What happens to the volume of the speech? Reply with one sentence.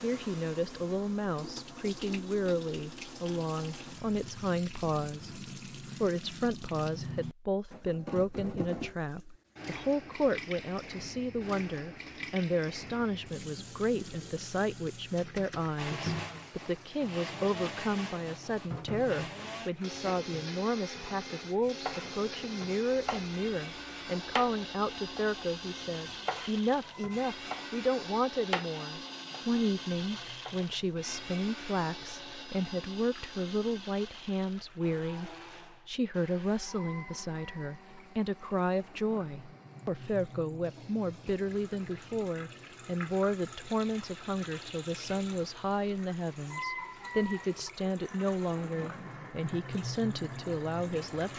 The volume of the speech stays about the same.